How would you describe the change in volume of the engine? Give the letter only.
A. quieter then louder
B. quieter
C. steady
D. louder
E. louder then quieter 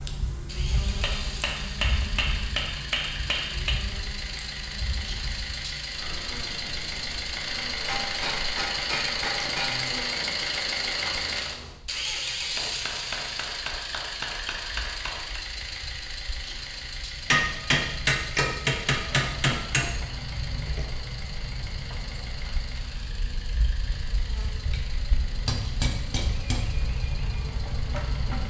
E.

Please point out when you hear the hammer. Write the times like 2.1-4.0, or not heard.
1.0-3.8, 7.8-9.8, 12.6-15.4, 17.3-19.9, 24.7-26.6.